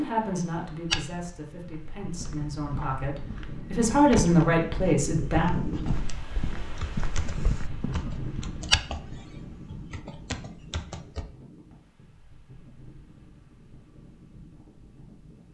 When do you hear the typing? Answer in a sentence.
You can hear the typing from 5.7 to 11.2 s.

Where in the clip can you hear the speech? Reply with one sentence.
The speech can be heard from 0.0 to 5.5 s.